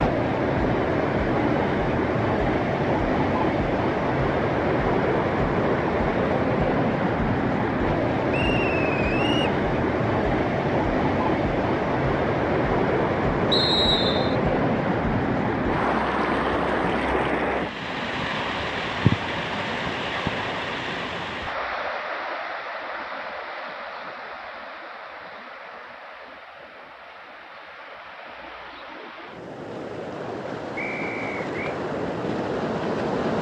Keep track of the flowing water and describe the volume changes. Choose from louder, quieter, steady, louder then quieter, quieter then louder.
quieter.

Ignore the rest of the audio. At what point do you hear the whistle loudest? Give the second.
14 s.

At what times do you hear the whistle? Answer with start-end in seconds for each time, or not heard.
8.3-9.6, 13.5-14.3, 30.8-31.8.